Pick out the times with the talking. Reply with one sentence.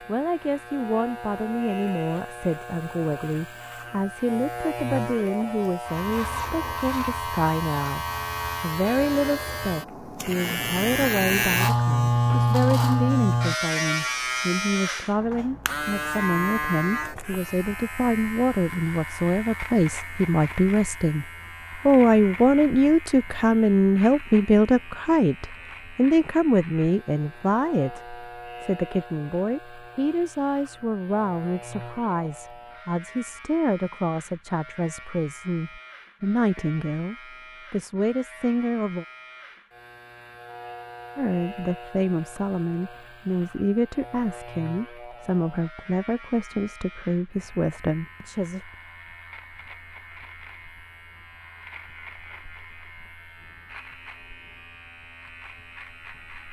The talking can be heard from 0.1 to 21.2 s, from 21.9 to 39.0 s and from 41.1 to 48.7 s.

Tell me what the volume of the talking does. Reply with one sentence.
The volume of the talking goes up, then down.